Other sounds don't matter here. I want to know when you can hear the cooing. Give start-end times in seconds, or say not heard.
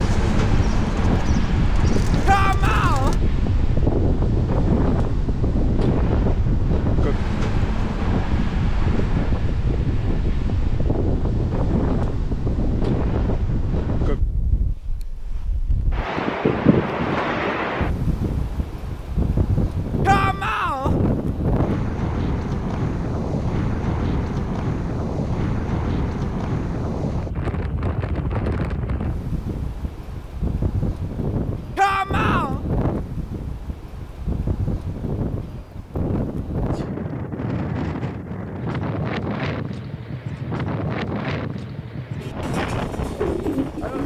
0.0-3.2, 42.1-44.0.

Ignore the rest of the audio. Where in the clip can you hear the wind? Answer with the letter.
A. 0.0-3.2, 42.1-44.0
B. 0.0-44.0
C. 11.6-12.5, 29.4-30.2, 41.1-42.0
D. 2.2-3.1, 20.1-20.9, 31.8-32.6
B.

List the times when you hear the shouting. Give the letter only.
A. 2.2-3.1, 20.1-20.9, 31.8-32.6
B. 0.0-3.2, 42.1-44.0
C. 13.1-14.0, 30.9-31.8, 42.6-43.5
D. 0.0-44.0
A.